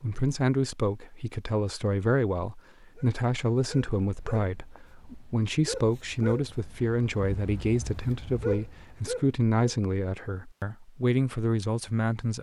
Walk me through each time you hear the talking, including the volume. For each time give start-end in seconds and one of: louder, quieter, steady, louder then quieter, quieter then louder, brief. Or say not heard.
0.0-12.3 steady.